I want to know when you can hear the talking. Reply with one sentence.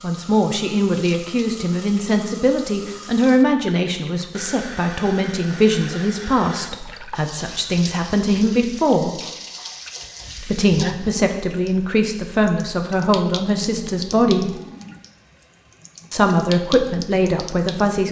You can hear the talking from 0.0 to 9.2 s, from 10.4 to 14.6 s and from 16.1 to 18.0 s.